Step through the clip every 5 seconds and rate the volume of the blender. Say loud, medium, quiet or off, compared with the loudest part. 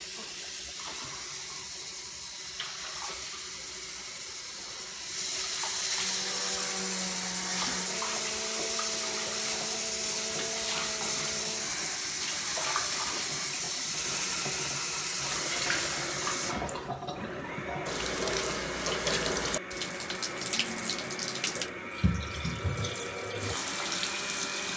off, loud, loud, loud, loud.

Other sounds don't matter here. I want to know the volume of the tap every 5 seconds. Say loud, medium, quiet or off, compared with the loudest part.
medium, loud, loud, loud, loud.